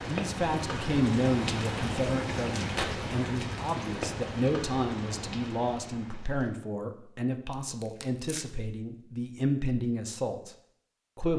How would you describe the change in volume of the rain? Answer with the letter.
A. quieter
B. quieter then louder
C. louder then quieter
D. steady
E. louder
A.